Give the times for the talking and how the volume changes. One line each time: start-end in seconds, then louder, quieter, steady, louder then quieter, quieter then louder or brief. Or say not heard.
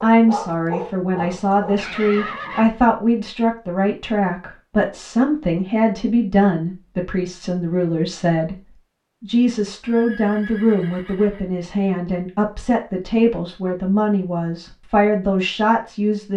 0.0-16.3 steady.